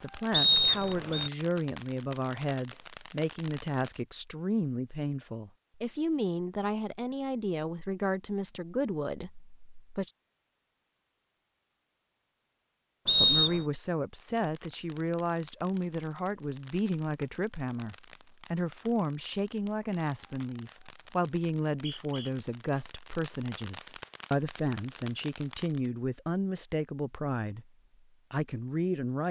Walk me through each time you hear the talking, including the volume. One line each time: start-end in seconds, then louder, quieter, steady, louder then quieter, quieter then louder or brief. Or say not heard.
0.0-10.1 steady
13.2-27.7 steady
28.3-29.2 brief.